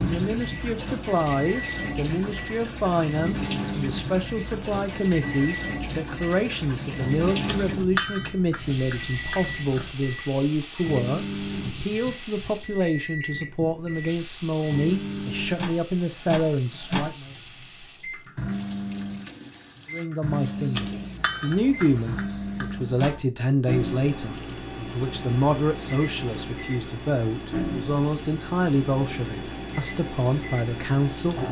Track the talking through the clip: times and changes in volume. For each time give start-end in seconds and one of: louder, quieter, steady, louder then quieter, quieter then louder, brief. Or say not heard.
0.0-17.3 steady
19.9-31.4 steady.